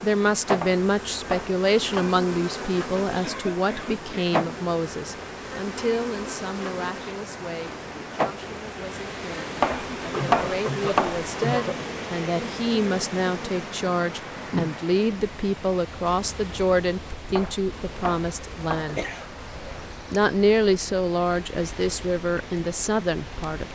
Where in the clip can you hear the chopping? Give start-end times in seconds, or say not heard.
0.6-2.2, 9.6-11.2, 17.3-18.9.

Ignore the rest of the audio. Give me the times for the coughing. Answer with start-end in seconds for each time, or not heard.
3.2-4.5, 10.1-11.8, 18.9-19.8.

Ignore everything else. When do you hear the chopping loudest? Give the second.
10 s.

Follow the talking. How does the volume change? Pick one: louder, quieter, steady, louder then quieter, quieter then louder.
quieter then louder.